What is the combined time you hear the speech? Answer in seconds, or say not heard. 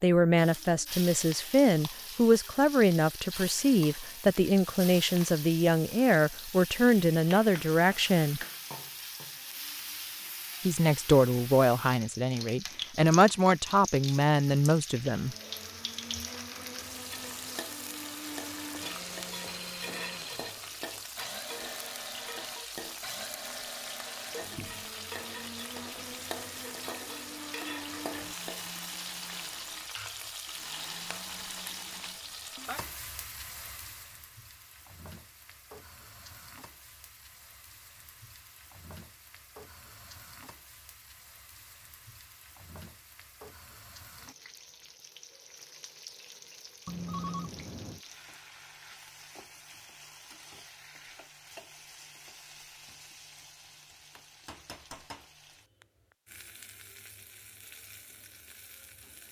13 s.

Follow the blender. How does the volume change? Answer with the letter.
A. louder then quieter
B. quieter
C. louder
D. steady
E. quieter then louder
D.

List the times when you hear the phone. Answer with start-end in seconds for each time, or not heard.
18.7-20.5, 46.9-48.0.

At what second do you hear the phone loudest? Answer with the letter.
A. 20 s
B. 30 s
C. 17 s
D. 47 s
D.